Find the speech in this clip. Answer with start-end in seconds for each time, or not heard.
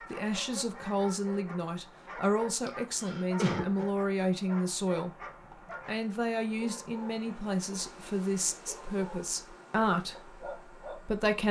0.1-5.1, 5.8-11.4.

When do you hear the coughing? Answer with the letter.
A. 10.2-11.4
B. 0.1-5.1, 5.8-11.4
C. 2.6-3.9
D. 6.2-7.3
C.